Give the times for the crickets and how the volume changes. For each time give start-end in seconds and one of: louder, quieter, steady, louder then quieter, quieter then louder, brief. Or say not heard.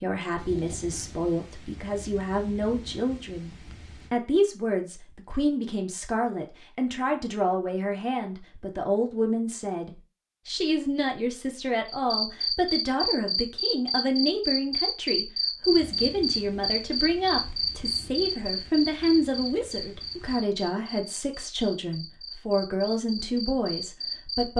11.8-24.5 quieter.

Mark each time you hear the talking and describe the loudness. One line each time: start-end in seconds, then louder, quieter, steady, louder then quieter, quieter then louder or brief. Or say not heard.
0.0-24.5 steady.